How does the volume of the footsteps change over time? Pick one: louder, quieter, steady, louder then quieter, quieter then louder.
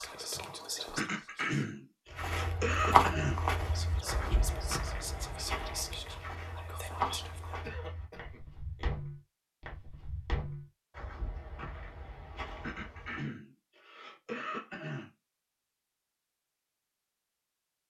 quieter.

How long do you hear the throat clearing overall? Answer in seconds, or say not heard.
6 s.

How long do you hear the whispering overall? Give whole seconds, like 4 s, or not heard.
6 s.